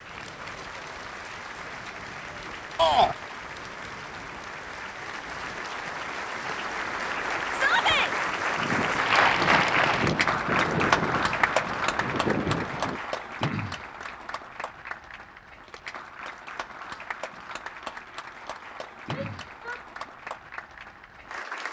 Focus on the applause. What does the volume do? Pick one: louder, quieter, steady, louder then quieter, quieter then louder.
louder then quieter.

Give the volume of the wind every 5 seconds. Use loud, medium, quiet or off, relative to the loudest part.
quiet, medium, loud, off, off.